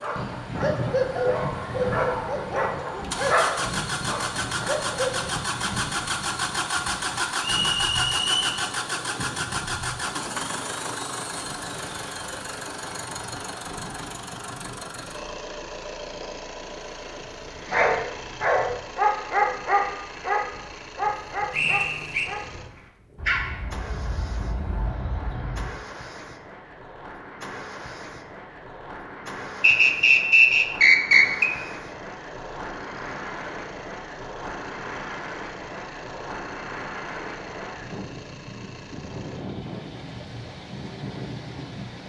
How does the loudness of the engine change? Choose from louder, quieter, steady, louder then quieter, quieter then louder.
quieter.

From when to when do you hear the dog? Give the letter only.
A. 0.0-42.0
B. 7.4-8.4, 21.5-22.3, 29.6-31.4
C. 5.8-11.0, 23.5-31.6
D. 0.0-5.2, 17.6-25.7
D.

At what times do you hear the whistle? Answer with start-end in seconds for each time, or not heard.
7.4-8.4, 21.5-22.3, 29.6-31.4.